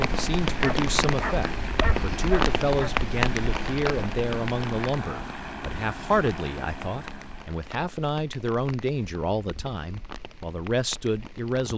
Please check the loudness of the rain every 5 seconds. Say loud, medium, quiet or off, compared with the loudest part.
loud, quiet, quiet.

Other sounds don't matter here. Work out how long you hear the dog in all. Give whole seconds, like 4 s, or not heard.
2 s.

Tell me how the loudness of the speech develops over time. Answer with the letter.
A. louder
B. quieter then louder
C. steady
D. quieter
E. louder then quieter
C.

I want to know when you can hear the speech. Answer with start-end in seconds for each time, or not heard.
0.0-11.7.